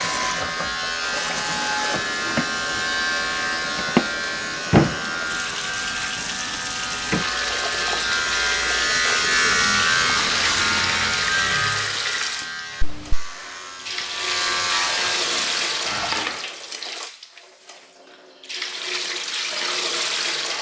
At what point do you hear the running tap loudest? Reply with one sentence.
The volume of the running tap peaks at 4 seconds.